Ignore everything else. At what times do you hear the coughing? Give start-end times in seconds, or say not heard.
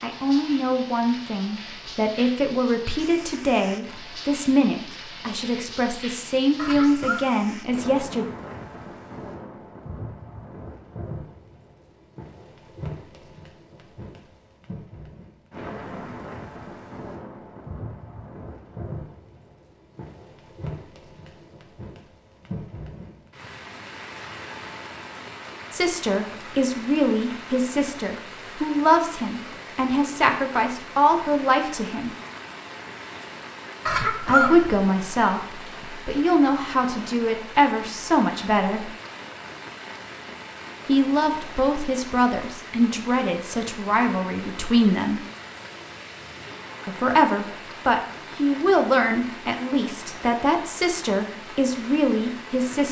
6.5-7.2, 33.9-35.5.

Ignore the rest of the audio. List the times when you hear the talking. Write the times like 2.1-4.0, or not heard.
0.0-8.2, 25.7-32.1, 34.2-38.9, 40.9-45.2, 46.9-52.8.